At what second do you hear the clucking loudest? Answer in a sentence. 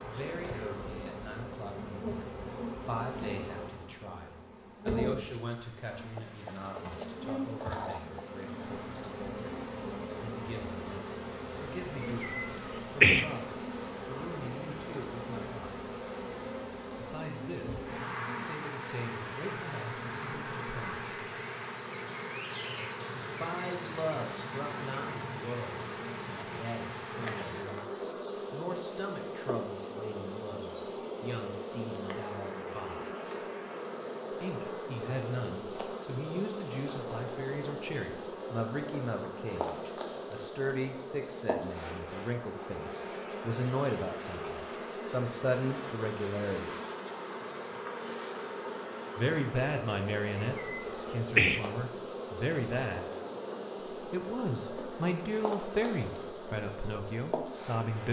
The volume of the clucking peaks at 8 seconds.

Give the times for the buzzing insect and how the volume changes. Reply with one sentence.
You can hear the buzzing insect from 0.0 to 58.0 s, at a steady volume.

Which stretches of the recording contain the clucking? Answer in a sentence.
You can hear the clucking from 6.2 to 8.2 s.